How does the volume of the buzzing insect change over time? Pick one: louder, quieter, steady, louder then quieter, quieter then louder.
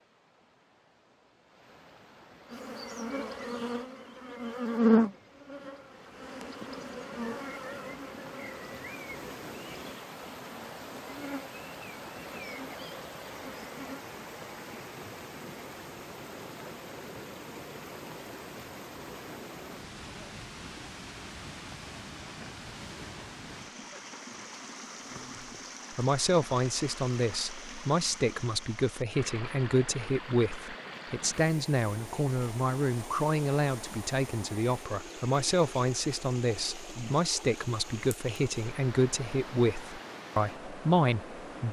quieter.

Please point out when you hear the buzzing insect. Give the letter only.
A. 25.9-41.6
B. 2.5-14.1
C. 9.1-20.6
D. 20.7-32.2
B.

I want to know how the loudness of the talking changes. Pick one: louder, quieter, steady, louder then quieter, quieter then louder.
steady.